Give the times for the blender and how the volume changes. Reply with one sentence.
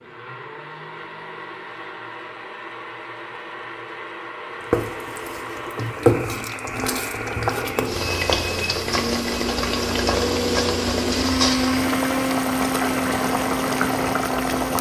The blender can be heard from 0.0 to 14.7 s, getting louder.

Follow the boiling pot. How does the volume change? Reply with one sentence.
The volume of the boiling pot stays about the same.